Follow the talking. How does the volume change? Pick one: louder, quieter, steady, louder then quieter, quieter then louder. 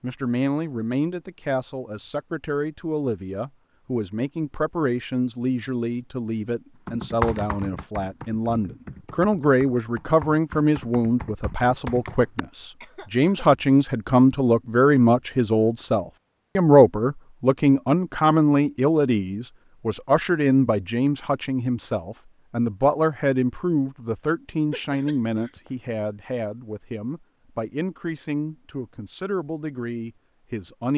louder then quieter.